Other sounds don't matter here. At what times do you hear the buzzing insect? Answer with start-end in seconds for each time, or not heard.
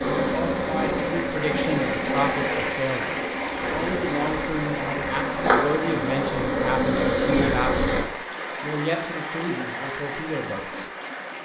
0.0-8.0.